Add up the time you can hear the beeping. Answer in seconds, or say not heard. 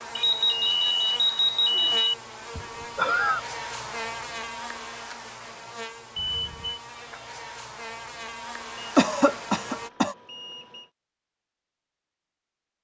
4 s.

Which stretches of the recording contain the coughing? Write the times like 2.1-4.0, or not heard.
2.5-3.4, 8.9-10.2.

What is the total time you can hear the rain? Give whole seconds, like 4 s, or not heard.
not heard.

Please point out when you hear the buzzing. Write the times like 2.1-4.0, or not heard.
0.0-9.9.